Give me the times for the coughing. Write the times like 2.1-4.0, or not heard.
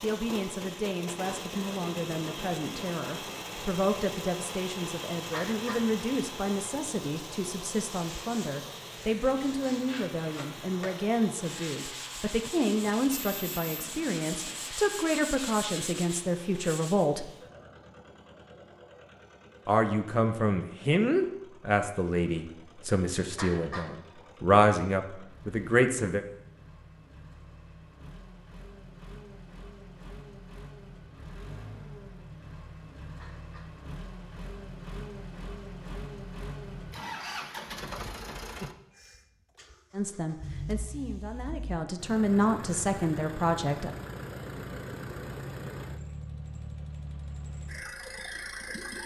5.3-5.9, 23.4-23.9, 33.1-33.8.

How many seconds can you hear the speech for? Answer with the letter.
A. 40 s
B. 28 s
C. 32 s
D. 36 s
B.